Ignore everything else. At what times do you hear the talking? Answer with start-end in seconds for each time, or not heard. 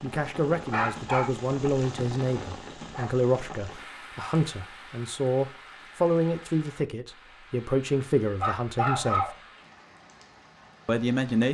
0.0-9.3, 10.8-11.4.